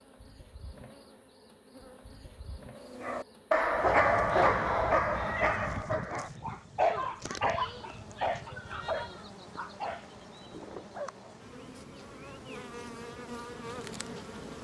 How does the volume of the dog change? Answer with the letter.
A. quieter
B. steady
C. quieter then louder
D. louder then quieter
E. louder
A.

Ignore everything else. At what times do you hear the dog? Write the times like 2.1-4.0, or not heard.
2.9-11.3.